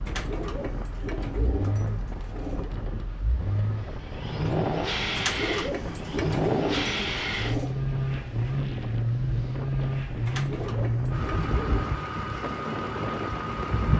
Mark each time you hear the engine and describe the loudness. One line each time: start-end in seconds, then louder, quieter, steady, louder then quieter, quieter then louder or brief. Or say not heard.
0.0-13.9 louder.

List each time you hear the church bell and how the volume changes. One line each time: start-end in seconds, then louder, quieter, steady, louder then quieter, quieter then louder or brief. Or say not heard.
not heard.